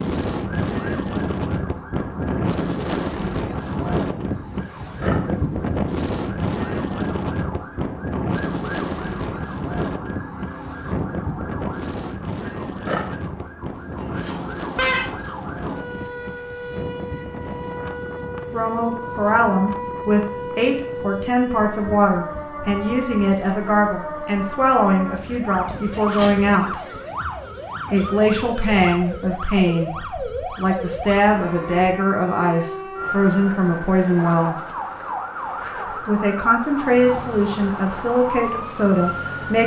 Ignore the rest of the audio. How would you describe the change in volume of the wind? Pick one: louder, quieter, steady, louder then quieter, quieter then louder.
quieter.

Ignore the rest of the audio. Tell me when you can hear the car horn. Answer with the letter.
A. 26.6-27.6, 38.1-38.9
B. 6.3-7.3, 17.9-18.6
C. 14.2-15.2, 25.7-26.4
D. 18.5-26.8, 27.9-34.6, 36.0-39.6
C.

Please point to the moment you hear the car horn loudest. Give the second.
15 s.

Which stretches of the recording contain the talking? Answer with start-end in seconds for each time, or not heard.
18.5-26.8, 27.9-34.6, 36.0-39.6.